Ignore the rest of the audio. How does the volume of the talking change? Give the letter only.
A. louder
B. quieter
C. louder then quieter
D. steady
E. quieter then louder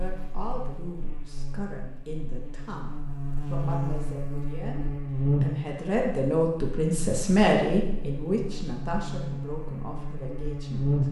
C.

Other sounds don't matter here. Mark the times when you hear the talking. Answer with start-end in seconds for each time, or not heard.
0.0-11.0.